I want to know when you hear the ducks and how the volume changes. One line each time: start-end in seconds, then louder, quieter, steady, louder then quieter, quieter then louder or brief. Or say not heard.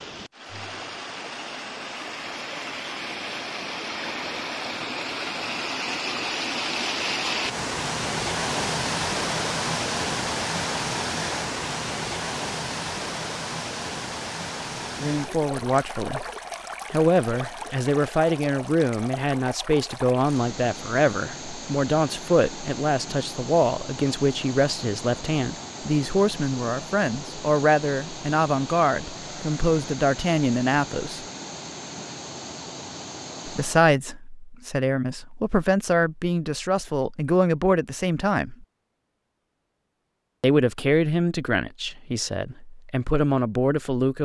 not heard.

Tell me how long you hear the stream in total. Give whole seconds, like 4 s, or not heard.
34 s.